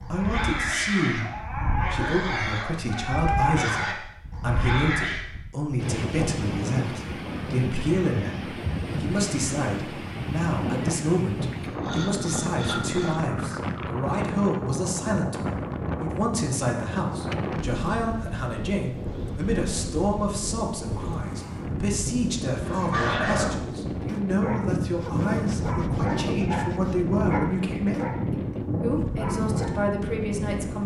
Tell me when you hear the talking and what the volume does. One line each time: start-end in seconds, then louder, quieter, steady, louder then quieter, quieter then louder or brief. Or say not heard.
0.0-30.8 steady.